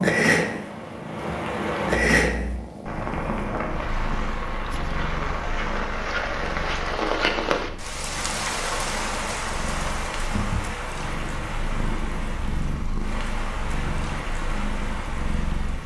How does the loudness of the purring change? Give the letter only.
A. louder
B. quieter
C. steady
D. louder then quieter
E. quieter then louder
E.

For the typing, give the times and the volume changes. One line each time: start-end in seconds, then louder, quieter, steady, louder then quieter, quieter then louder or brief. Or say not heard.
not heard.